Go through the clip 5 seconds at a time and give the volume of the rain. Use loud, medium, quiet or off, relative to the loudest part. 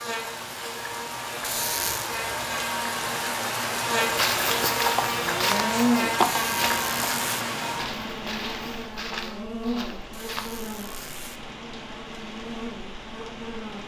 loud, loud, medium.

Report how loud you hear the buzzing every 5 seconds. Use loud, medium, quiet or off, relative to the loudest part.
loud, loud, medium.